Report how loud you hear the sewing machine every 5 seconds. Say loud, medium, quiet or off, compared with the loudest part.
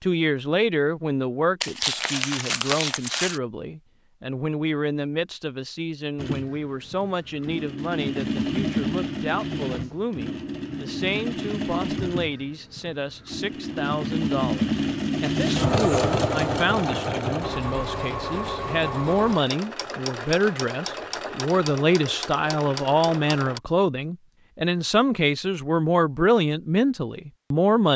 off, loud, loud, loud, medium, off.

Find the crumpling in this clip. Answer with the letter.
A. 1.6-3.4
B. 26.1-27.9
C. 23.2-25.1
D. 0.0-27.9
A.